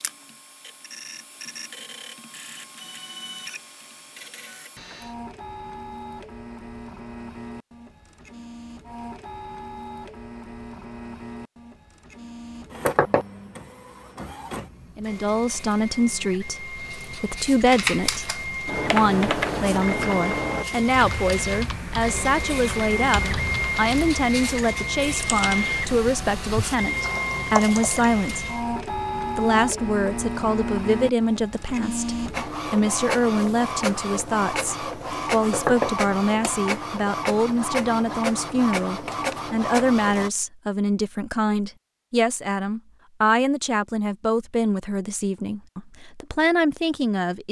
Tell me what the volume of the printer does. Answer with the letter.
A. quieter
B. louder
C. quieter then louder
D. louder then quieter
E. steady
B.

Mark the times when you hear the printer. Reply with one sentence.
The printer can be heard from 0.0 to 40.3 s.